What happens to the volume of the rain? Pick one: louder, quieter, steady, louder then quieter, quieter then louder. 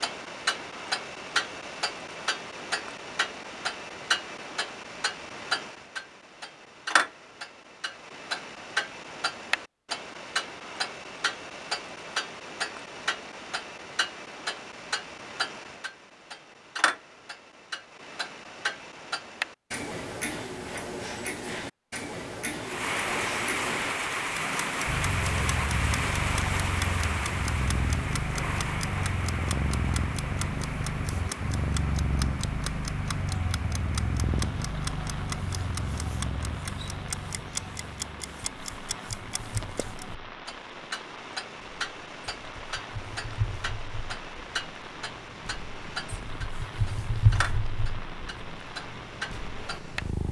quieter.